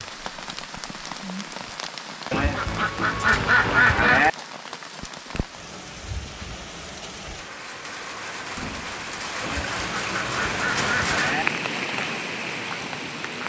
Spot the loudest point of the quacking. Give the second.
4 s.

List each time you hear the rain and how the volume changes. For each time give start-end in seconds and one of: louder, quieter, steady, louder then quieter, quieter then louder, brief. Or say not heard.
0.0-13.4 louder.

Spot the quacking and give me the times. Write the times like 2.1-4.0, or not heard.
2.3-4.3, 9.4-11.4.